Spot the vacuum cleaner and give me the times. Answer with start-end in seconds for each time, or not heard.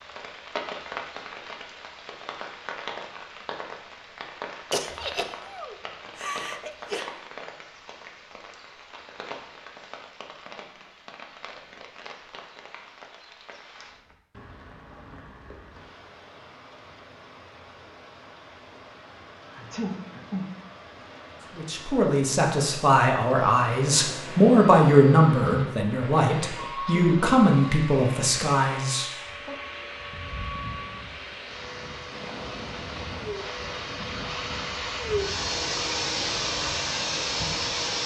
23.4-38.0.